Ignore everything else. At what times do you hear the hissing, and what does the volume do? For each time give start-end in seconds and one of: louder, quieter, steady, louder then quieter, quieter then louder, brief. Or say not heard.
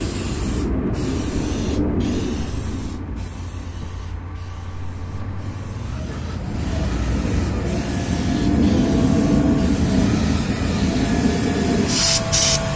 0.0-12.7 quieter then louder.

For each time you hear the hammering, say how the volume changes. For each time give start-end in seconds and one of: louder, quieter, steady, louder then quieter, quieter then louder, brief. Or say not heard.
not heard.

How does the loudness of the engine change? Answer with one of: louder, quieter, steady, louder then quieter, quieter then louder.
louder.